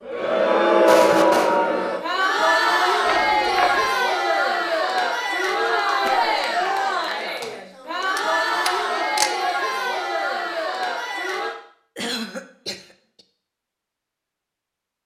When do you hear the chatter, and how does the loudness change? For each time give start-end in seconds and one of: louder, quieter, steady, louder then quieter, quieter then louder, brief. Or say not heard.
0.0-11.6 quieter.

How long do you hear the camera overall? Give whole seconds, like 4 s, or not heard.
2 s.